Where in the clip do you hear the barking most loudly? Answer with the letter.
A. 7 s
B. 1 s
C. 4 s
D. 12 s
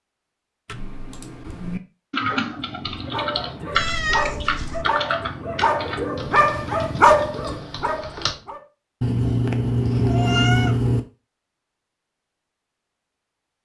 A.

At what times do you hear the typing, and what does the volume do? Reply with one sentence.
The typing can be heard from 0.7 to 8.4 s, getting quieter.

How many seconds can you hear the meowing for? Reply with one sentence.
You can hear the meowing for 3 seconds altogether.